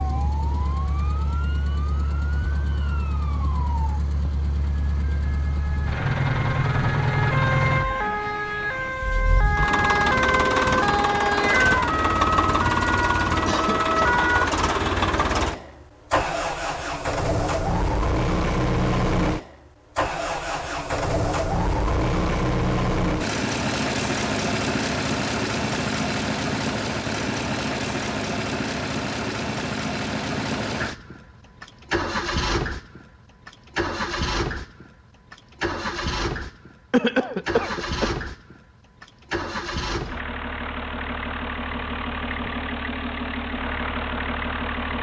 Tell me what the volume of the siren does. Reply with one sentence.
The volume of the siren goes up.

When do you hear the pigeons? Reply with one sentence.
The pigeons can't be heard in this clip.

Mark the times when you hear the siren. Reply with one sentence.
You can hear the siren from 0.0 to 14.6 s.